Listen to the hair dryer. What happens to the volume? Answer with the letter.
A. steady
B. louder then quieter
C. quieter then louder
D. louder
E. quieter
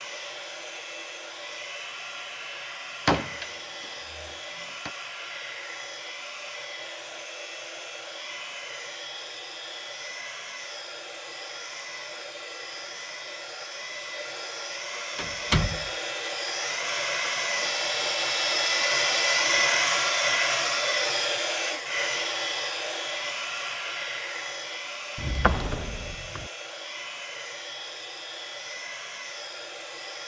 B.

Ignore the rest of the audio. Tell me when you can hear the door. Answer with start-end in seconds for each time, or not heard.
3.0-4.9, 15.2-15.9, 25.1-26.4.